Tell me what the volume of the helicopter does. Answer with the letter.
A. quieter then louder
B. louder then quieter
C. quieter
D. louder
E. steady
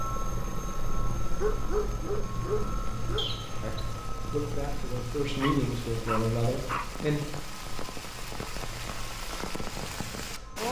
C.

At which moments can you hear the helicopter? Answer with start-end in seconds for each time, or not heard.
0.0-10.6.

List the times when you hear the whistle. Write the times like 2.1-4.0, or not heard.
3.1-3.7.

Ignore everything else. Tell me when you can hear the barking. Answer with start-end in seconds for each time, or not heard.
1.4-3.3, 5.4-6.9.